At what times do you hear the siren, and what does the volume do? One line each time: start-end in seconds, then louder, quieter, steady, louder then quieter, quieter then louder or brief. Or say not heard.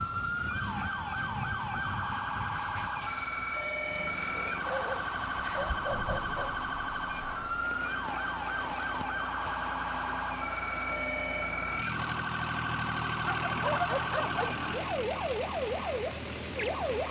0.0-17.0 steady.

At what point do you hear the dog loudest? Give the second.
14 s.